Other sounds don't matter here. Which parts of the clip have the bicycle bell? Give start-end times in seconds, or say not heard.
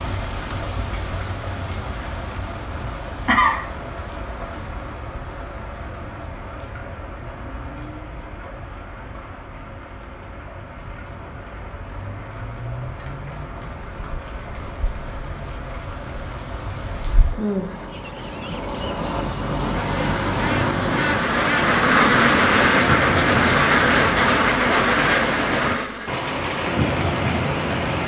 not heard.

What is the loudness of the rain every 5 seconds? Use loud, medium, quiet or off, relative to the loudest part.
medium, quiet, quiet, medium, loud, loud.